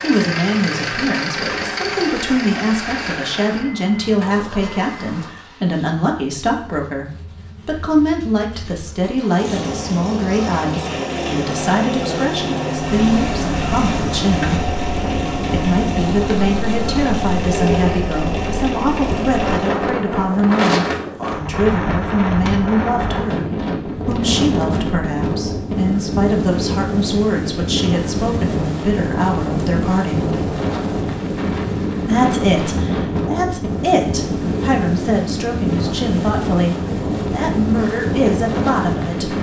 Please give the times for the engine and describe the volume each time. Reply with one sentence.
The engine can be heard from 0.0 to 19.8 s, getting quieter then louder.